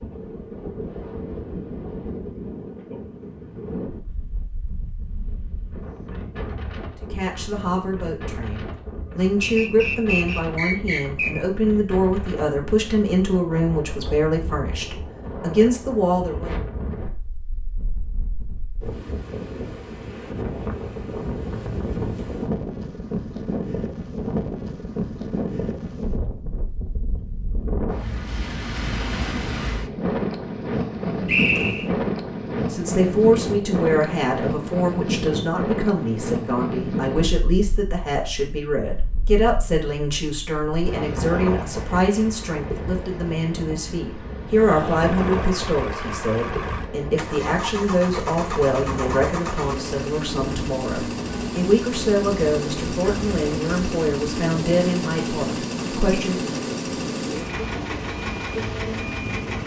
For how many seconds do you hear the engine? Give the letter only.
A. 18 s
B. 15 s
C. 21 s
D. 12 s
B.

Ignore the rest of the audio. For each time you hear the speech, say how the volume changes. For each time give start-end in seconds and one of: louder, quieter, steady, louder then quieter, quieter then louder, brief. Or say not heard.
7.0-16.5 louder
32.7-56.5 steady.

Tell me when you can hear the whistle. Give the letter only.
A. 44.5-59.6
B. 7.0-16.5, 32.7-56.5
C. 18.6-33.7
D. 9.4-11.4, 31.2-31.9
D.